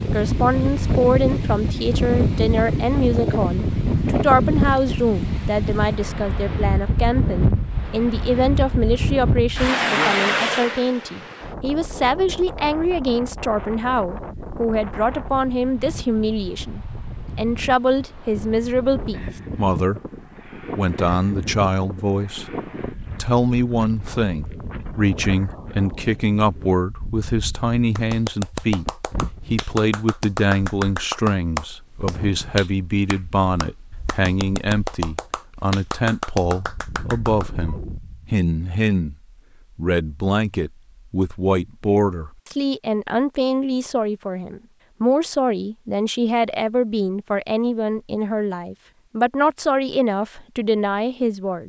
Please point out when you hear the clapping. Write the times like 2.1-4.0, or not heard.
27.9-37.8.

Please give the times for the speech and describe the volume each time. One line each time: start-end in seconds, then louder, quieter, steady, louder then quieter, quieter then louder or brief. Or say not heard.
0.0-28.9 steady
29.5-39.1 steady
39.8-51.6 steady.